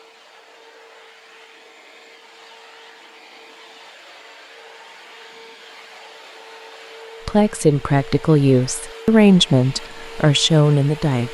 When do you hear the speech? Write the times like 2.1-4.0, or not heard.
7.2-11.2.